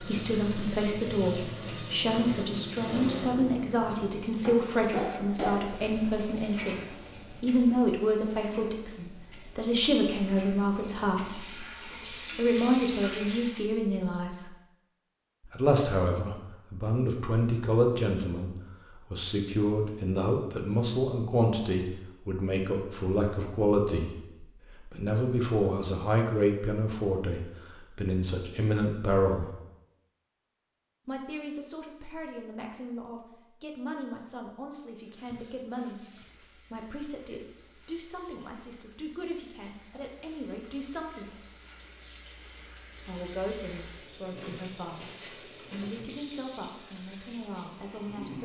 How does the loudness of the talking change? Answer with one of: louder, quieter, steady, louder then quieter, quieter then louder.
quieter.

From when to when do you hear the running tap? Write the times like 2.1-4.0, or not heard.
0.0-13.7, 35.0-48.4.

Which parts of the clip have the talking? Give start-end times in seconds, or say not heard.
0.0-14.5, 15.4-29.5, 31.1-41.5, 43.0-48.4.